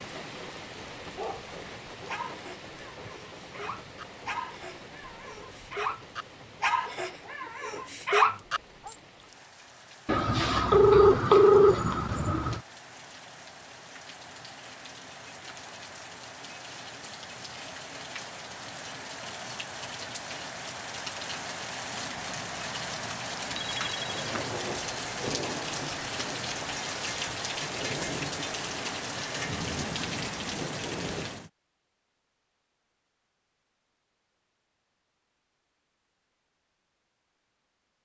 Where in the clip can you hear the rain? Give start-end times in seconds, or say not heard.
0.0-31.5.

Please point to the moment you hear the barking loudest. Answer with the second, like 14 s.
8 s.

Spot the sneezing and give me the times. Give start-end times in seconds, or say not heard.
not heard.